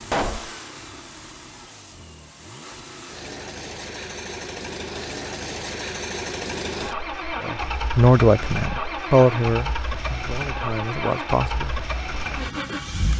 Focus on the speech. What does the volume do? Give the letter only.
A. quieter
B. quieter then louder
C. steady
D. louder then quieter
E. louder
B.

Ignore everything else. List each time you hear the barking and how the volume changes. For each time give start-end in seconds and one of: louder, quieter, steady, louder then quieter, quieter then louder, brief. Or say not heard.
not heard.